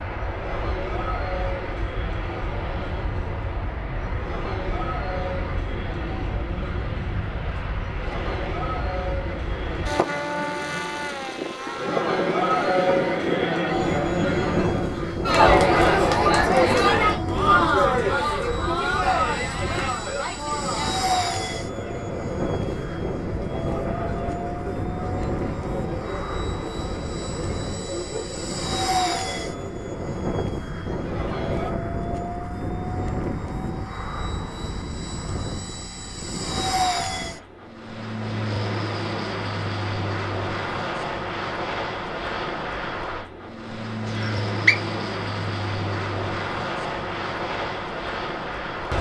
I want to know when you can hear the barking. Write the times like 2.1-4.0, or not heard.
not heard.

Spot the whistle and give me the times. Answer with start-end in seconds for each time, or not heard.
44.0-44.8.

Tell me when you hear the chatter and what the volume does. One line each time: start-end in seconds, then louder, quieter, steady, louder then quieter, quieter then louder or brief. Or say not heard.
0.2-31.7 louder then quieter.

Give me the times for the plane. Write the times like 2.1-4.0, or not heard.
0.0-48.9.